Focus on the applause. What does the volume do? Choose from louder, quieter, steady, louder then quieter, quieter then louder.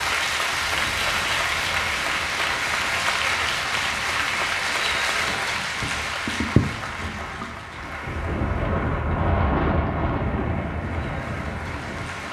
quieter.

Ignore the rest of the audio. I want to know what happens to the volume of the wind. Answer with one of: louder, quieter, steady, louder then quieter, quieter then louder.
louder.